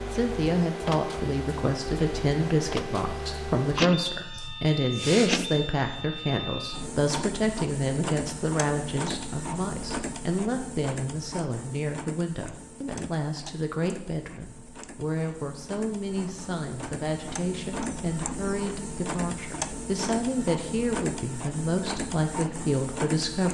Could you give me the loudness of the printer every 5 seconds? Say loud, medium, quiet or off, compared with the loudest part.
loud, loud, medium, loud, loud.